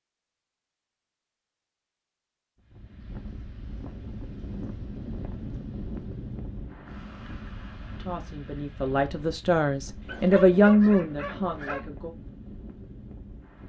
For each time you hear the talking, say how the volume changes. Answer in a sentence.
You can hear the talking from 8.0 to 12.1 s, getting louder then quieter.